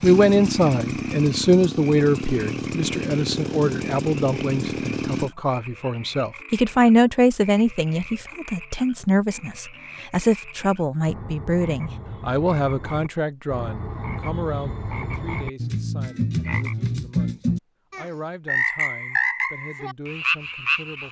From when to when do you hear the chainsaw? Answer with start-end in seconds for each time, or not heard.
0.0-5.3.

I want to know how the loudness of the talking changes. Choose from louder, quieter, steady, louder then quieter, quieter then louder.
quieter.